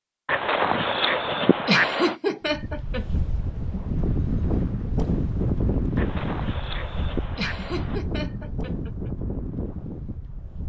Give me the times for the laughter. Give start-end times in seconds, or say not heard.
1.6-3.0, 7.3-9.1.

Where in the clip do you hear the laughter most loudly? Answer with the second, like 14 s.
2 s.